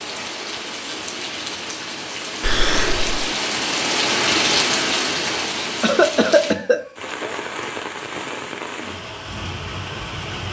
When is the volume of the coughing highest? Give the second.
6 s.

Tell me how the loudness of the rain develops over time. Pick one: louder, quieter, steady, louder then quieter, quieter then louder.
louder then quieter.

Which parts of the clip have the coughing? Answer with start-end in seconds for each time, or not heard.
2.4-3.3, 5.8-7.3.